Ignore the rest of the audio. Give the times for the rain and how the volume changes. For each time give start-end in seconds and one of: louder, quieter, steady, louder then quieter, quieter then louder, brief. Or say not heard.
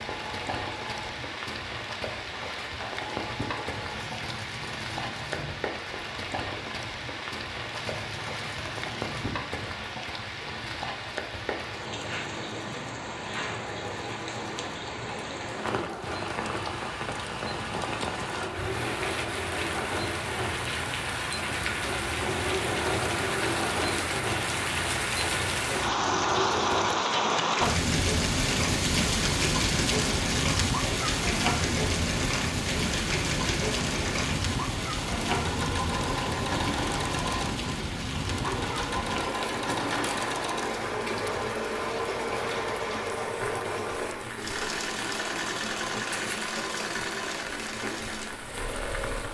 0.0-49.2 louder then quieter.